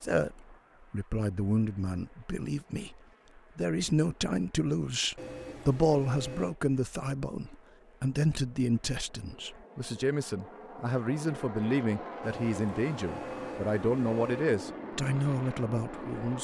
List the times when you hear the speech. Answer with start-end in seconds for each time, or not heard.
0.0-16.3.